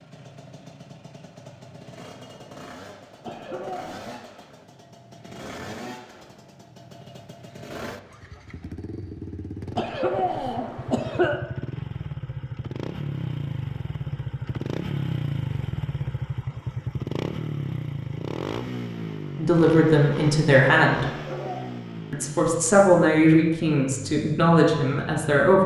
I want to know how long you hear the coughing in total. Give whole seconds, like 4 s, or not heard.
3 s.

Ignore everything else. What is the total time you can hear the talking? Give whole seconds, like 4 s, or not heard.
5 s.